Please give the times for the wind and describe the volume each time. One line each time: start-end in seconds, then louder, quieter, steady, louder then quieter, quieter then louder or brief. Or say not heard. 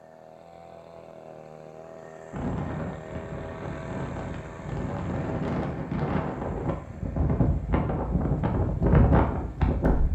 2.3-10.0 louder.